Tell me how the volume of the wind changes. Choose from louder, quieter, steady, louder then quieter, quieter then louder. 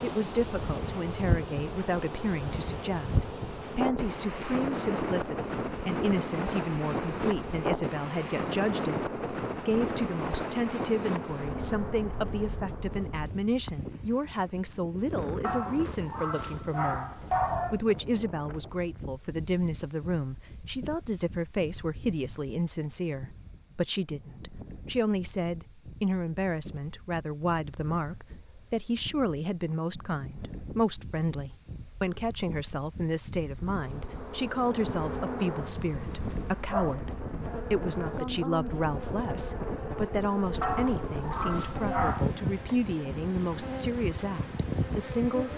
quieter then louder.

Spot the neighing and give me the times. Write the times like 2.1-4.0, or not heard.
not heard.